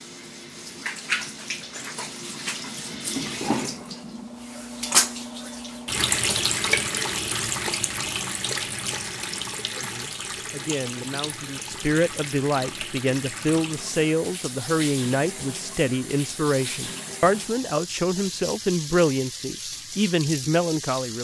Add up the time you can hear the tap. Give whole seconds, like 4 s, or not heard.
21 s.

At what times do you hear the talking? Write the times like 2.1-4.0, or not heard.
9.7-21.2.